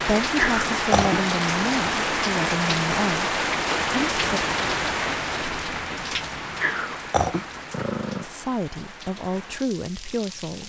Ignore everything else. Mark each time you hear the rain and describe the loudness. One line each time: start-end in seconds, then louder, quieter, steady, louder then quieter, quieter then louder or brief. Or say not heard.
0.0-10.6 quieter.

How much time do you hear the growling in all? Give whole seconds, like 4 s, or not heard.
3 s.